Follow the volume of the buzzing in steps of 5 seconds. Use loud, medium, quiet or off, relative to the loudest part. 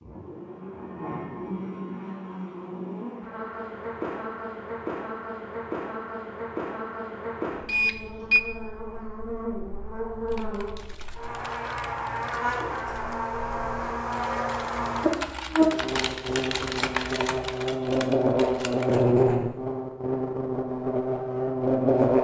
medium, medium, medium, loud, loud.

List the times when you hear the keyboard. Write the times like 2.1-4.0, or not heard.
10.2-19.1.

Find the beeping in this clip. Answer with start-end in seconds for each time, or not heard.
7.7-8.4.